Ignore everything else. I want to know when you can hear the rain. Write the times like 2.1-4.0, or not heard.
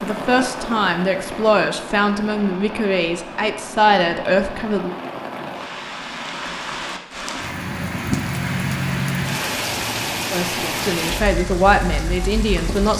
0.0-12.9.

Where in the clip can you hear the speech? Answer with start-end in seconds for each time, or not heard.
0.0-5.0, 10.3-12.9.